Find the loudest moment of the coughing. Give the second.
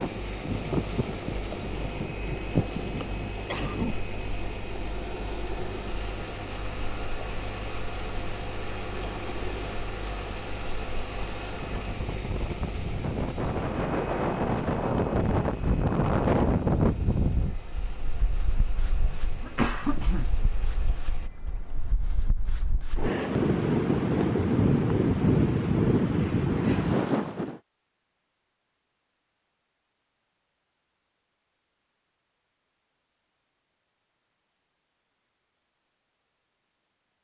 20 s.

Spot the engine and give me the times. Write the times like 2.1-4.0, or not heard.
0.0-21.3.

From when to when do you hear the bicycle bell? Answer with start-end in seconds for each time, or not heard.
not heard.